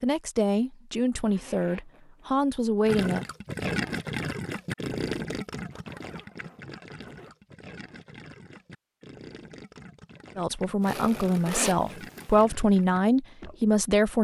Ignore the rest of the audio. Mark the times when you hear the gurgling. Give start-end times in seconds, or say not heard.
2.9-13.7.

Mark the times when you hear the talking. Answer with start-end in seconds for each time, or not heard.
0.0-3.2, 10.3-14.1.